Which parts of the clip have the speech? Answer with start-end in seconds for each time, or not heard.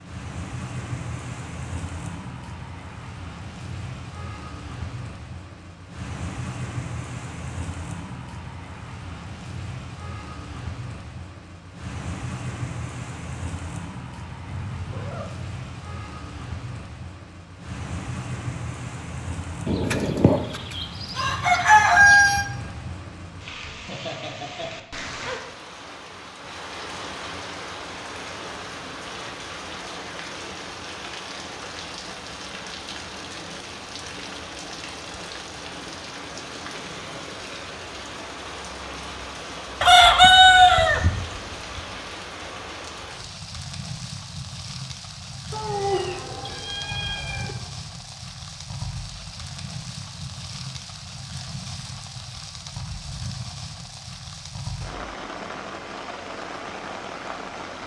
not heard.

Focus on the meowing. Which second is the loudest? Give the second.
46 s.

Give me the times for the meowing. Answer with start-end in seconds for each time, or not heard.
14.4-15.3, 45.5-47.5.